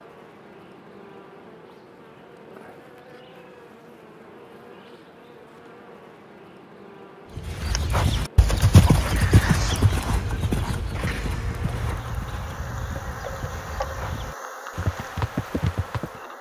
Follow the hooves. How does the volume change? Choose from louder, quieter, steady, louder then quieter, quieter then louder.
quieter then louder.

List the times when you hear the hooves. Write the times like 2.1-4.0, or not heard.
7.3-16.2.